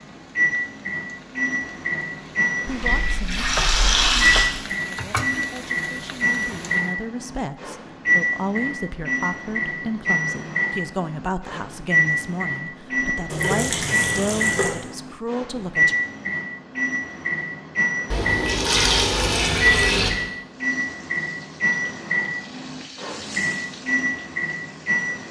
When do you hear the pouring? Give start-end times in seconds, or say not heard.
2.6-4.5, 13.2-14.7, 18.1-20.1.